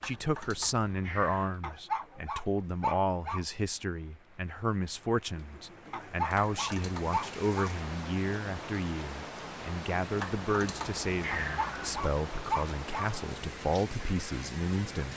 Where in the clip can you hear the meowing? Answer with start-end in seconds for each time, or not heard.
0.0-1.6, 6.3-7.1, 10.2-12.1.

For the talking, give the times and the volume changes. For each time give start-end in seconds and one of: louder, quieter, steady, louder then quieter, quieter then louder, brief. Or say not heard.
0.0-15.1 steady.